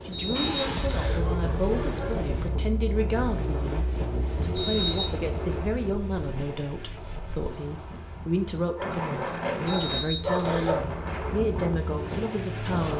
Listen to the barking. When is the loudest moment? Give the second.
10 s.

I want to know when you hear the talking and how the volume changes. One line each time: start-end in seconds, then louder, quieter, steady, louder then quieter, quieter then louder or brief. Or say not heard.
0.0-12.9 steady.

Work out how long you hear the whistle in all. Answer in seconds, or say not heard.
3 s.